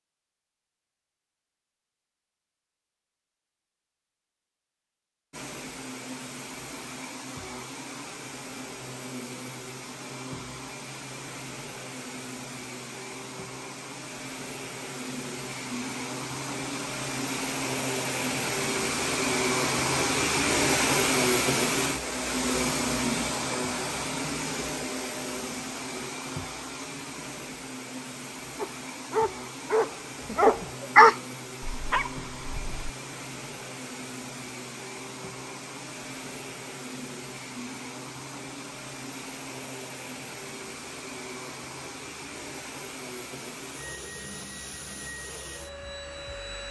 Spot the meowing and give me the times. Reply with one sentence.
You can't hear the meowing here.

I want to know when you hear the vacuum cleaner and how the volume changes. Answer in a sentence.
You can hear the vacuum cleaner from 5.3 to 46.6 s, getting louder then quieter.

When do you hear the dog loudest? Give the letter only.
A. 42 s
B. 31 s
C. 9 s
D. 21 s
B.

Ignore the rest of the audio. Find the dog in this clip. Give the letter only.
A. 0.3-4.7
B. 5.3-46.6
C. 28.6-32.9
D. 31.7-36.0
C.